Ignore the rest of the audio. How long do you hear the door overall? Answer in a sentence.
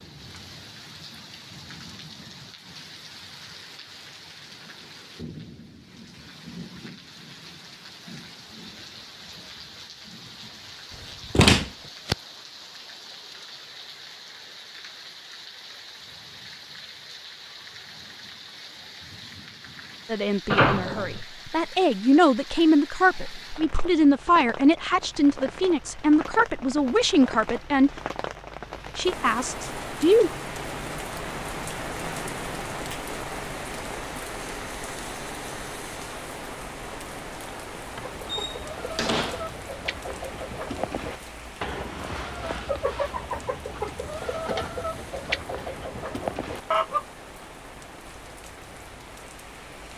The door can be heard for 3 seconds in total.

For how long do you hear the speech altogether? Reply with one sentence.
The speech can be heard for 9 seconds in total.